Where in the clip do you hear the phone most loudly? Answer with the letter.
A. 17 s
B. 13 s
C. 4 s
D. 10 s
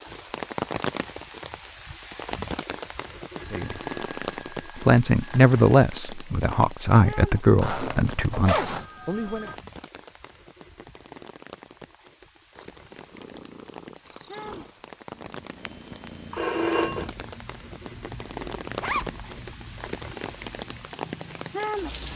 A.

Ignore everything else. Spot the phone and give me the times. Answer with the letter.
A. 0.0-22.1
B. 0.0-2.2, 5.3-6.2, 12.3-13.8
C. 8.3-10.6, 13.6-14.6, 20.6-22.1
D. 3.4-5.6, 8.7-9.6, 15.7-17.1
D.